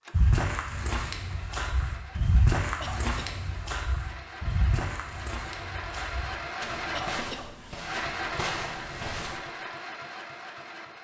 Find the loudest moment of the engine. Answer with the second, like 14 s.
8 s.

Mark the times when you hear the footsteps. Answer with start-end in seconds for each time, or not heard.
0.1-9.4.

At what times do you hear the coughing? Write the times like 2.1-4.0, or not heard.
2.8-3.4, 6.9-7.5.